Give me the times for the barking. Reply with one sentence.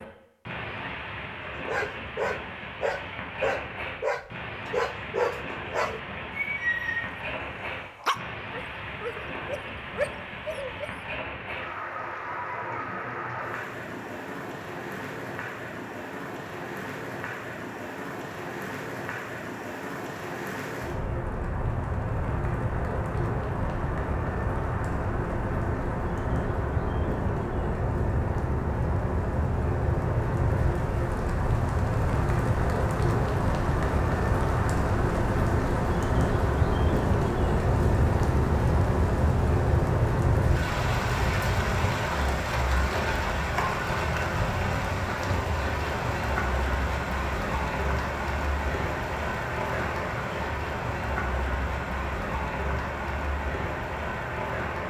The barking can be heard from 1.4 to 10.9 s.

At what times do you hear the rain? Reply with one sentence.
You can hear the rain from 0.0 to 54.8 s.